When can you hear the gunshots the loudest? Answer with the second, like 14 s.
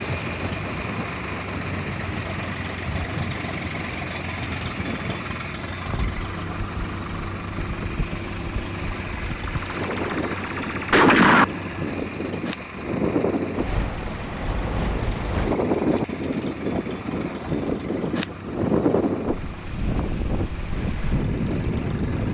11 s.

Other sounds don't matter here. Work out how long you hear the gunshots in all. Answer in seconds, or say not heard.
2 s.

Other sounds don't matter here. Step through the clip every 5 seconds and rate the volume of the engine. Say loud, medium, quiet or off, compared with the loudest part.
loud, loud, loud, medium, medium.